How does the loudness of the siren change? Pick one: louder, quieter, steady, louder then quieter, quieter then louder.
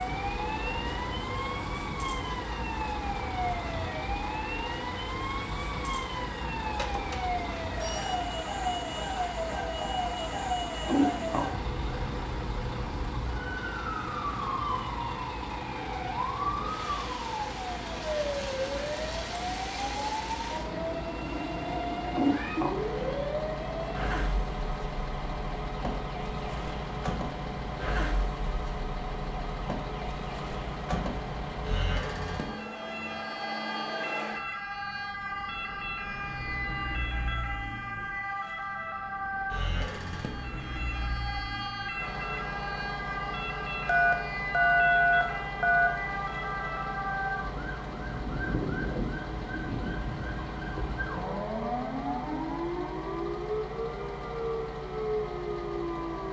steady.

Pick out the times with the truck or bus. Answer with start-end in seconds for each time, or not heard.
0.0-56.2.